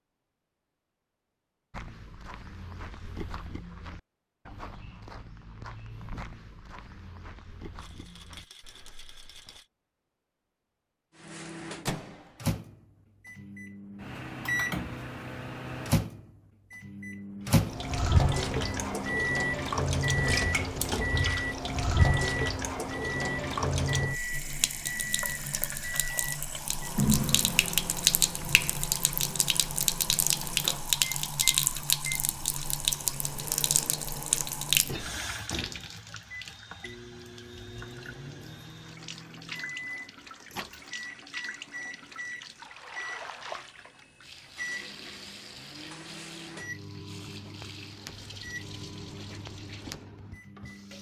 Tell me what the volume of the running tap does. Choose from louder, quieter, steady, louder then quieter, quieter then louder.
quieter.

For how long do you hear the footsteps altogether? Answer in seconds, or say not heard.
8 s.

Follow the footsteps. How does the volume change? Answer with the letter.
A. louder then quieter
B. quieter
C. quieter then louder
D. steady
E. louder
B.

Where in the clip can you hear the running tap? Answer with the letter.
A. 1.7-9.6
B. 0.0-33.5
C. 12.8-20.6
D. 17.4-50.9
D.